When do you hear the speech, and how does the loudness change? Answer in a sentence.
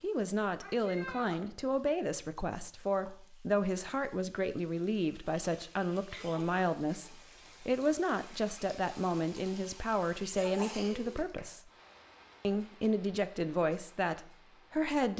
You can hear the speech from 0.0 to 11.7 s, at a steady volume; and briefly from 12.4 to 15.1 s.